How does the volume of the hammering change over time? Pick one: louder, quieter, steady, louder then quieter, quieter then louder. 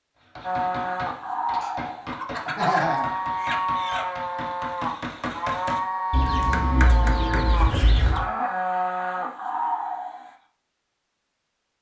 louder.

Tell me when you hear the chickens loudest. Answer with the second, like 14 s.
3 s.